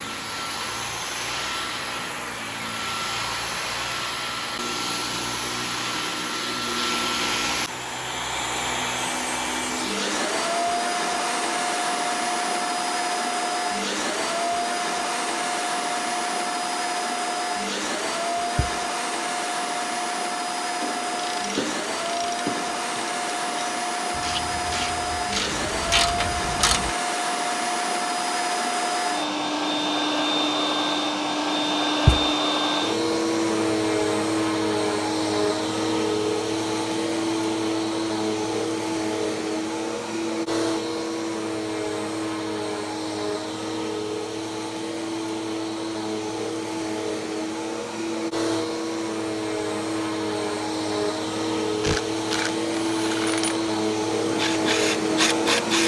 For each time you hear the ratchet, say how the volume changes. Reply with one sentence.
The ratchet can be heard from 20.8 to 26.9 s, getting louder; and from 51.8 to 55.8 s, getting quieter then louder.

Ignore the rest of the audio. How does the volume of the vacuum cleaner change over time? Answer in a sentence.
The volume of the vacuum cleaner stays about the same.